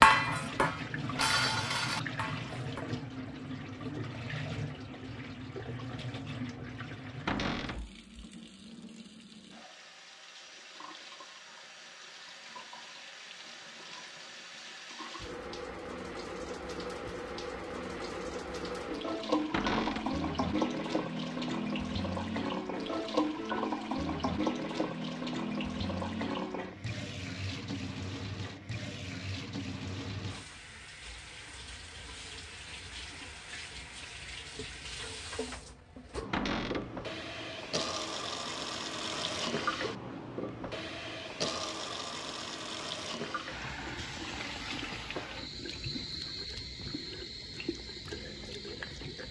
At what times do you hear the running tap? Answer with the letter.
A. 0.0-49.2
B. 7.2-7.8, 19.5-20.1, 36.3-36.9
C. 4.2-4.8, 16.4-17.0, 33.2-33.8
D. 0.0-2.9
A.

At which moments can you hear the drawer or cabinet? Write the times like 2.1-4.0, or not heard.
7.2-7.8, 19.5-20.1, 36.3-36.9.